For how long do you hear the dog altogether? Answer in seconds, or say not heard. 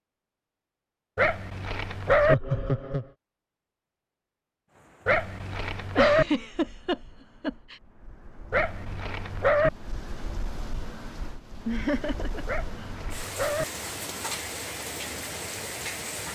5 s.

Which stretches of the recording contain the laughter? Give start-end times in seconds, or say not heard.
2.0-3.1, 6.0-7.8, 11.7-12.4.